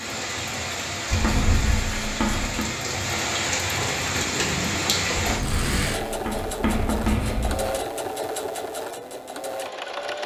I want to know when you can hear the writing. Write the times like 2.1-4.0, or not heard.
1.1-2.6, 5.2-7.8.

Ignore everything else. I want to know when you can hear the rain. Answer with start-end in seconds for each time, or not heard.
0.0-5.4.